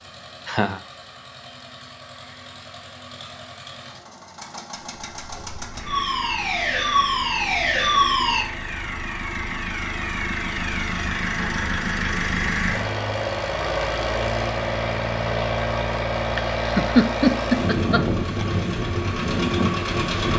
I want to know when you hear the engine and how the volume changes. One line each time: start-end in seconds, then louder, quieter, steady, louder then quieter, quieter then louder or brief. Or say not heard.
0.0-20.3 louder.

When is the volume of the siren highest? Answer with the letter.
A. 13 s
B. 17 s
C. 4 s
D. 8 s
D.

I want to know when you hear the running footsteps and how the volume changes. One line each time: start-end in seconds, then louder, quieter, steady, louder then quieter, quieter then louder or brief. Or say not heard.
not heard.